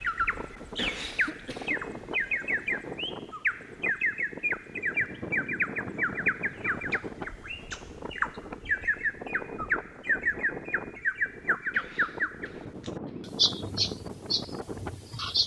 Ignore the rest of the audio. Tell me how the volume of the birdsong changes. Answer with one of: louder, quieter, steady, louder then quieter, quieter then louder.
steady.